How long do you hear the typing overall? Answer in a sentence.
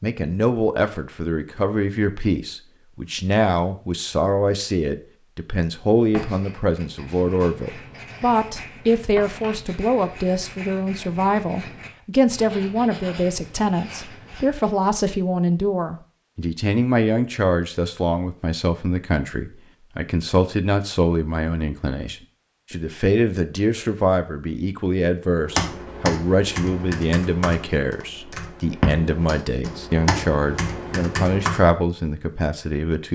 You can hear the typing for 6 seconds altogether.